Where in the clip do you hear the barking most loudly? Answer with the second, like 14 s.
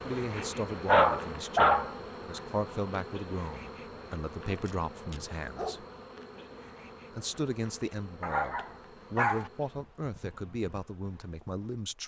1 s.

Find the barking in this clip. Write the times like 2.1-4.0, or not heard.
0.3-1.9, 4.5-5.9, 8.2-9.5.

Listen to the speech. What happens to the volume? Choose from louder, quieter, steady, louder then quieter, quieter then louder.
steady.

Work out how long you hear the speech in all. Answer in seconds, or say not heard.
11 s.